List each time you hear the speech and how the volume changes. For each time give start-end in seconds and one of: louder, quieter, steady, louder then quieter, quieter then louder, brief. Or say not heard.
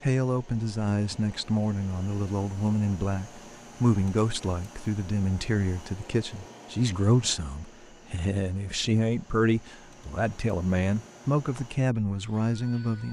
0.0-13.0 steady.